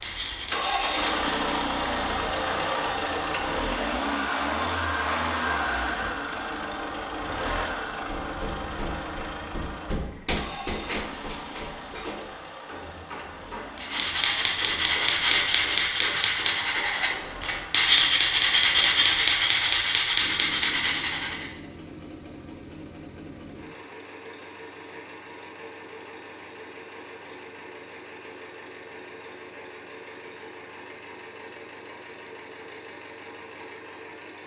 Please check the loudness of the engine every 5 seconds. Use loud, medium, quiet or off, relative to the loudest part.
loud, loud, quiet, quiet, quiet, quiet, quiet.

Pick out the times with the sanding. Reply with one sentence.
The sanding can be heard from 0.0 to 1.7 s and from 13.8 to 21.5 s.